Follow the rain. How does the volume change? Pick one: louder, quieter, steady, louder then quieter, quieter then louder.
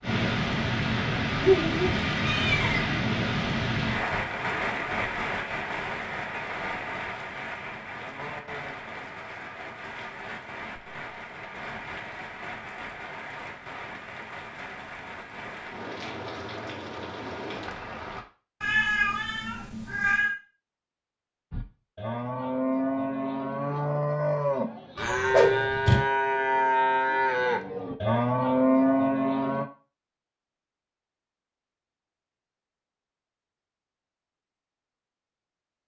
quieter.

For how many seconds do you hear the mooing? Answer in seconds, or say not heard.
8 s.